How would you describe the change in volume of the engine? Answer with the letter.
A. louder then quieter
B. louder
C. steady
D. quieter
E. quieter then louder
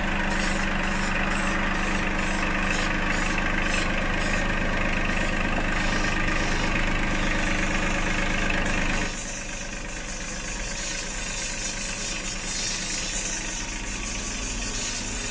D.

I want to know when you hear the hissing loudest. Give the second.
13 s.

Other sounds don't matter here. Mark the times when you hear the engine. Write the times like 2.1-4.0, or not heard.
0.0-15.2.